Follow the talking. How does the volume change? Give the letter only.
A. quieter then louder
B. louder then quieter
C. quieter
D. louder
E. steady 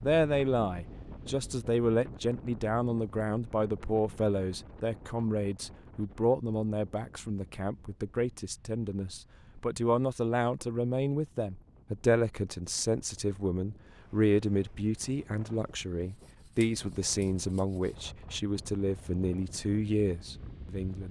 E.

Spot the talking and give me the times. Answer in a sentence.
You can hear the talking from 0.0 to 21.0 s.